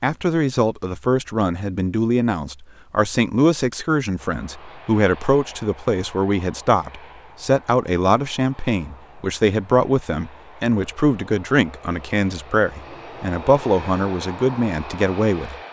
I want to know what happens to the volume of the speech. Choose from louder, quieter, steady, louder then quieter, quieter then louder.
steady.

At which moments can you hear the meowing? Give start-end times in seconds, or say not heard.
not heard.